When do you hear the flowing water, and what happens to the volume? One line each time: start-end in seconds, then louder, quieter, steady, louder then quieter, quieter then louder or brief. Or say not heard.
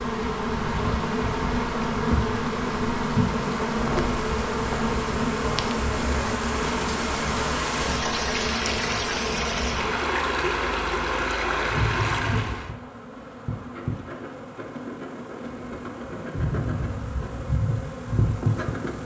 0.0-12.8 louder.